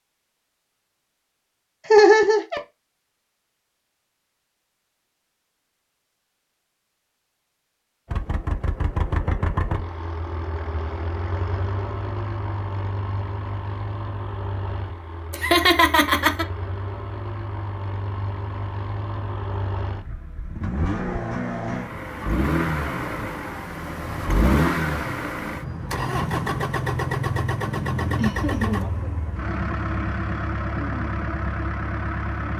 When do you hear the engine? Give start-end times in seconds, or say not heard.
8.1-32.5.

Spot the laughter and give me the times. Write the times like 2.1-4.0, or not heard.
1.9-2.6, 15.3-16.4, 28.1-28.9.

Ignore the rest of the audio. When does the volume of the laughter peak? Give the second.
2 s.